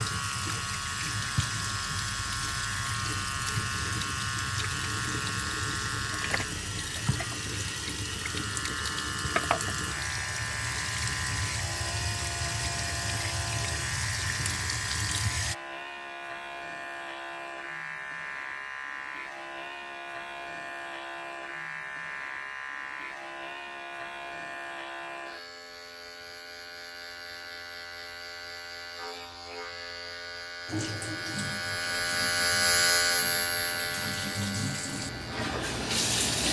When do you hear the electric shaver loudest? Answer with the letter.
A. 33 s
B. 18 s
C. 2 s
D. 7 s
A.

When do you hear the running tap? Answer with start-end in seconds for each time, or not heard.
0.0-15.6, 30.6-36.4.